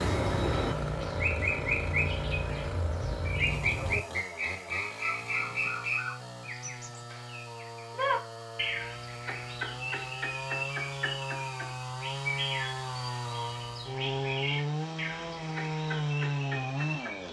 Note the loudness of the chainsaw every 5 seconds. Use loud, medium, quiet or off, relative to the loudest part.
medium, medium, loud, loud.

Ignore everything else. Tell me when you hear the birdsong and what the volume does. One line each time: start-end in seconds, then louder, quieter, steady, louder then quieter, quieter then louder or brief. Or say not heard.
0.0-17.2 quieter.